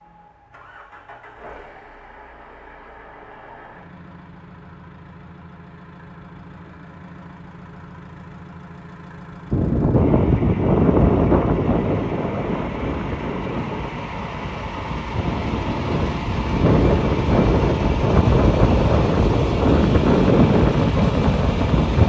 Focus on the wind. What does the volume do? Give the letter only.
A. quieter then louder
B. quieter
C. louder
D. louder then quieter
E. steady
A.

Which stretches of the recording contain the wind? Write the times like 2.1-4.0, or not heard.
9.5-22.0.